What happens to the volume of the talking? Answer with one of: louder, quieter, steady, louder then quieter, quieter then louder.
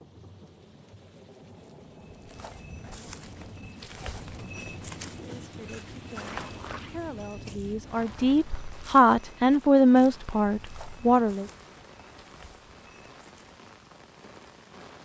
louder then quieter.